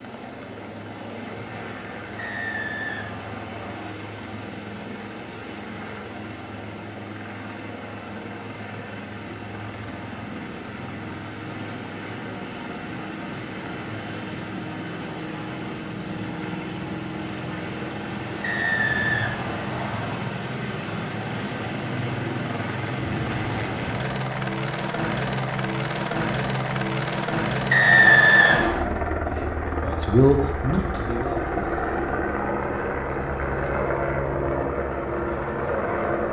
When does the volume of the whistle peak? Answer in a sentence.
The loudest moment of the whistle is at 28 seconds.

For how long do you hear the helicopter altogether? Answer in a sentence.
The helicopter can be heard for 36 seconds in total.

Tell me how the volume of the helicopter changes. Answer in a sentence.
The volume of the helicopter goes up.